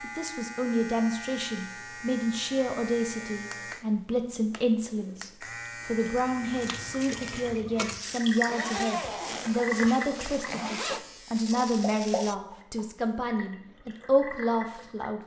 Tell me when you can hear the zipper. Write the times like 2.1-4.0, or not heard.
8.4-11.1.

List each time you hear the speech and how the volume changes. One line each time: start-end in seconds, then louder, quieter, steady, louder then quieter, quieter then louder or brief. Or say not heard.
0.0-15.2 steady.